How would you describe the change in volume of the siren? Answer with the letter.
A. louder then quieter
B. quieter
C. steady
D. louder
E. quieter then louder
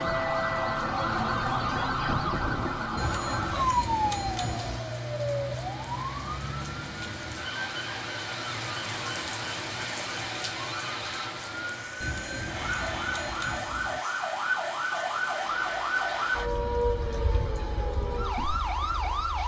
E.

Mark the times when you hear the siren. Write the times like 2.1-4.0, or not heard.
0.0-19.4.